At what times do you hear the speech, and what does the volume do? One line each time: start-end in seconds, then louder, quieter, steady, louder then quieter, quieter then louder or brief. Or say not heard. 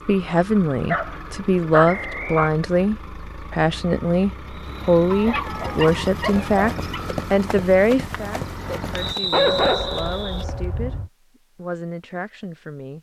0.1-10.9 quieter
11.6-12.9 brief.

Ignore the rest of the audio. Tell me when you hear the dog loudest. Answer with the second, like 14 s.
10 s.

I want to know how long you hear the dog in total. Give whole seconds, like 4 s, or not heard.
5 s.